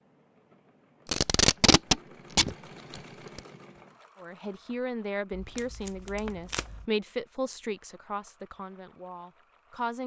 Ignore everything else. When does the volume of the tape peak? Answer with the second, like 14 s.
2 s.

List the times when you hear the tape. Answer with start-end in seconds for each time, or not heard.
1.1-3.4, 5.3-6.8.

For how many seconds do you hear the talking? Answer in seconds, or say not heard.
6 s.